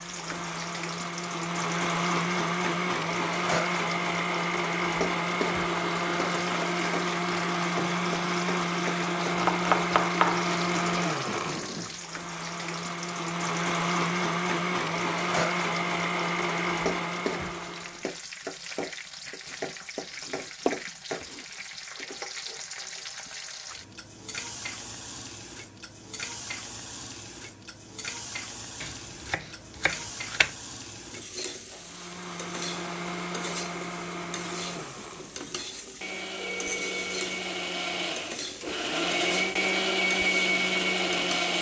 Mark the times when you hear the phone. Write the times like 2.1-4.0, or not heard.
36.4-37.2.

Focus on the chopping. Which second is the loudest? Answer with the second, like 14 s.
10 s.